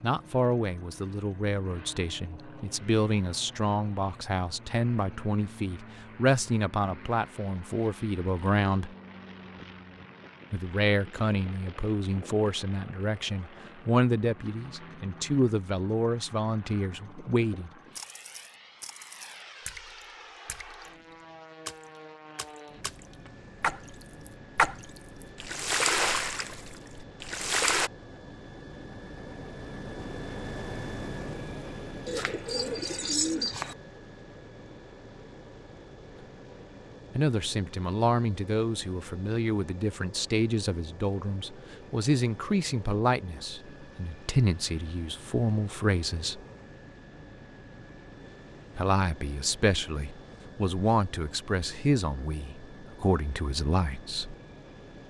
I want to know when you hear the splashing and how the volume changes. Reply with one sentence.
The splashing can be heard from 17.9 to 27.9 s, getting louder.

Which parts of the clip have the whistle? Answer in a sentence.
You can't hear the whistle here.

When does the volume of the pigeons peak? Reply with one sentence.
The loudest moment of the pigeons is at 33 seconds.